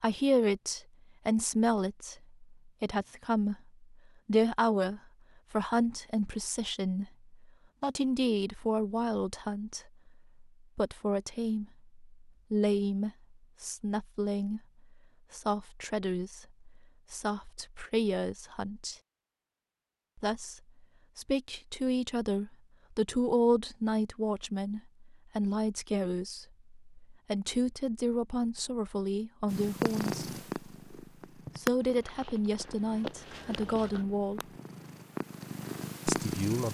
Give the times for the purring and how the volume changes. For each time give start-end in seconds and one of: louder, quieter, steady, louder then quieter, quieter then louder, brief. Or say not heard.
29.4-36.6 quieter then louder.